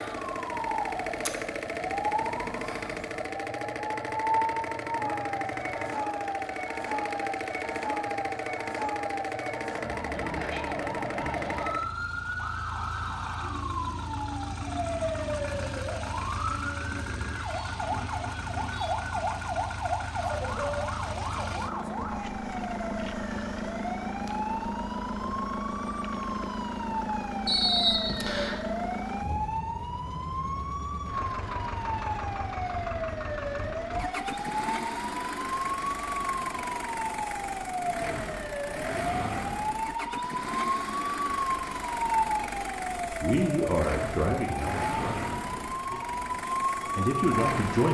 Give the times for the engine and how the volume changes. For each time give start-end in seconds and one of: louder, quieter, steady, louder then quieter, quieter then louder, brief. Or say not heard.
0.0-47.8 steady.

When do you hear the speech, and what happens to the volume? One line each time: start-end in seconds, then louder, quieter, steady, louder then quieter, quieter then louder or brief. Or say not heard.
43.2-47.8 quieter then louder.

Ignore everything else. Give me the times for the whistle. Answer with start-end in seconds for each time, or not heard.
27.4-28.6.